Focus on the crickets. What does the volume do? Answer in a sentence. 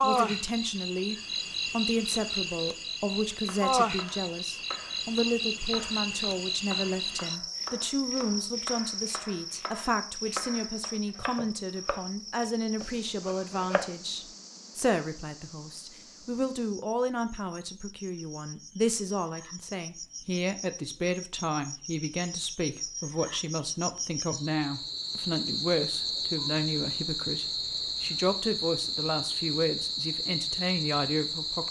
The loudness of the crickets goes down, then up.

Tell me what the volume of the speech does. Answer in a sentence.
The loudness of the speech stays about the same.